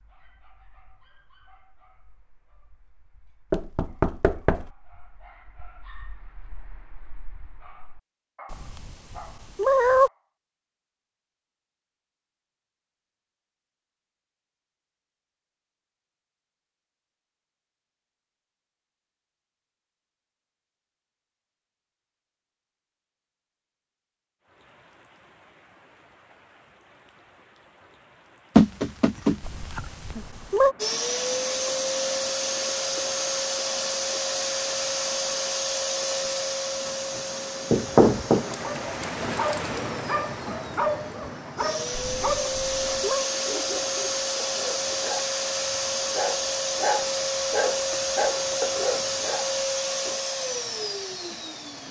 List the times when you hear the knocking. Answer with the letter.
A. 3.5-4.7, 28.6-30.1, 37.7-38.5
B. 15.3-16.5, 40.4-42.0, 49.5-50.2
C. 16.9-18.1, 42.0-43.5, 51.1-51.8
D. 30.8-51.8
A.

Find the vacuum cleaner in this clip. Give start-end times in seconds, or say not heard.
30.8-51.8.